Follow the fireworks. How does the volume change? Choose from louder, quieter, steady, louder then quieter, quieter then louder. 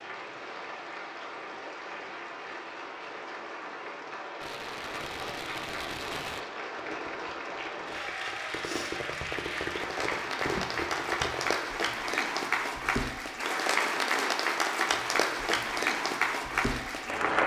quieter then louder.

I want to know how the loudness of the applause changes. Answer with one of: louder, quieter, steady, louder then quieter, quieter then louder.
louder.